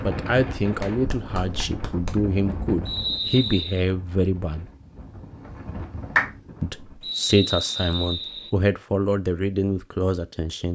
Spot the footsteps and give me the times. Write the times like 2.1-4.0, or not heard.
not heard.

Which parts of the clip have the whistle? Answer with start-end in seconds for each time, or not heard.
2.9-3.9, 7.0-8.5.